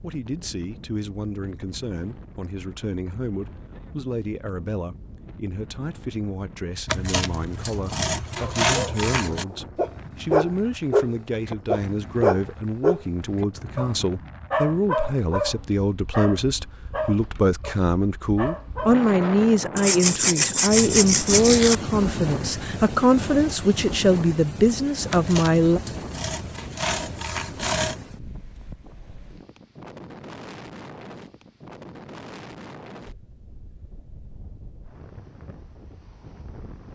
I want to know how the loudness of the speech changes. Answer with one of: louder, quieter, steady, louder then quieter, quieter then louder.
louder.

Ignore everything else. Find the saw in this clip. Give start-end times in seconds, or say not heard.
6.8-9.4, 19.8-21.8, 25.1-28.0.